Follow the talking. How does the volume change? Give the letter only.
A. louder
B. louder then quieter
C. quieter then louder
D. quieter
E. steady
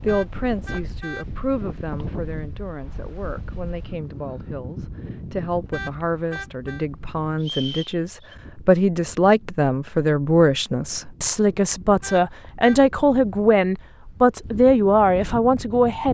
A.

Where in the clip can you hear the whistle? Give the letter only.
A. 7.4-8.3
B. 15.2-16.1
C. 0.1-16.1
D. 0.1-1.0
A.